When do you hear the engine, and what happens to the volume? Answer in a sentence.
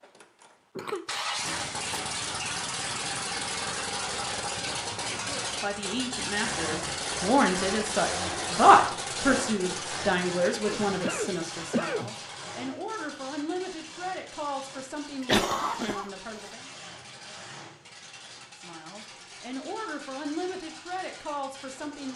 The engine can be heard from 0.0 to 22.1 s, getting quieter.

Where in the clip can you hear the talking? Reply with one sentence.
The talking can be heard from 5.1 to 16.7 s and from 18.6 to 22.1 s.